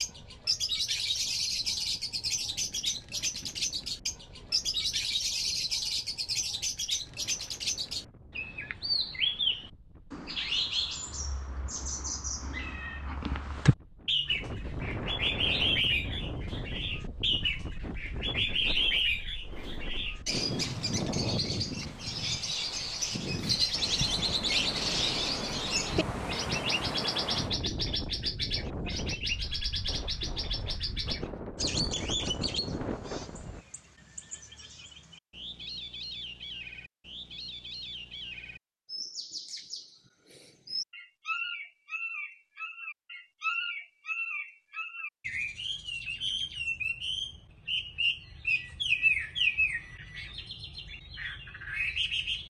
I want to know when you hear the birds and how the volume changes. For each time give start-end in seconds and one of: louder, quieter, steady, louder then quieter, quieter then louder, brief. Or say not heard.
0.0-52.4 quieter then louder.